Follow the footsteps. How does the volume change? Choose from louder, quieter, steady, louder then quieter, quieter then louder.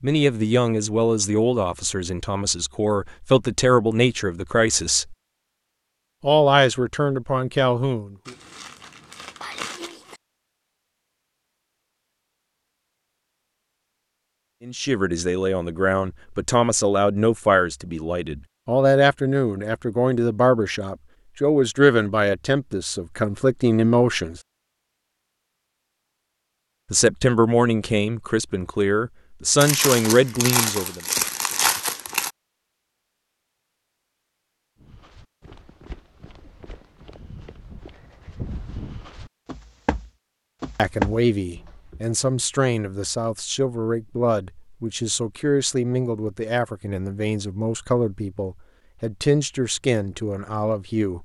louder.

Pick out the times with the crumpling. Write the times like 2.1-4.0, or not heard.
8.2-10.2, 29.6-32.3.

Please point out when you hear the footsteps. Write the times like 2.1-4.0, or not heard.
34.8-42.0.